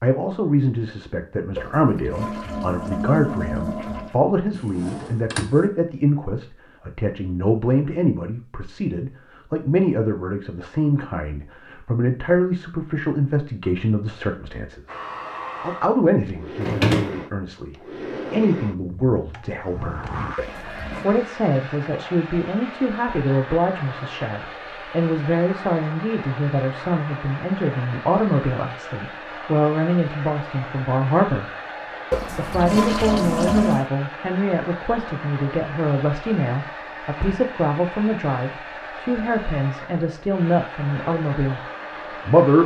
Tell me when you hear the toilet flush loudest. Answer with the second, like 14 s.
33 s.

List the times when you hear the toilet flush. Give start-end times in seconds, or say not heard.
1.6-4.2, 20.4-21.1, 32.1-33.9.